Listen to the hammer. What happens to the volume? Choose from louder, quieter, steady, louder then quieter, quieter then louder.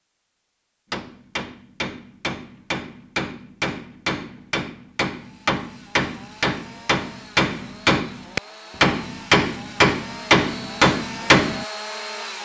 louder.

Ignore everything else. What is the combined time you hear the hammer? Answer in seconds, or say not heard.
11 s.